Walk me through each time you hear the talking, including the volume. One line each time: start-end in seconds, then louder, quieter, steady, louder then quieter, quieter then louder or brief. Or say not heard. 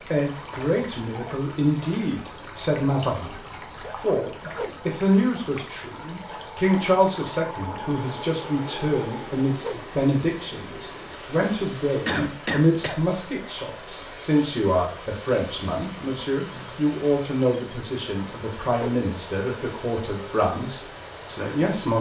0.0-21.9 steady.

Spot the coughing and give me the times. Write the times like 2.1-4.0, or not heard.
12.1-13.0.